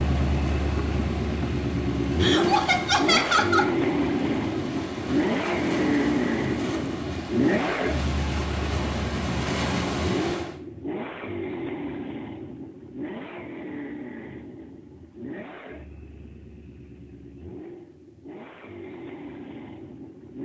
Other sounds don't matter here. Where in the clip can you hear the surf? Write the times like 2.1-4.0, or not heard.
0.0-10.6.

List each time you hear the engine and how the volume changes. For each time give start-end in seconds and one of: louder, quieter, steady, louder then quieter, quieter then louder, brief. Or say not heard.
0.0-20.4 quieter.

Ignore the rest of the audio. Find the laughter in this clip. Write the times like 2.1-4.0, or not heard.
2.2-3.7.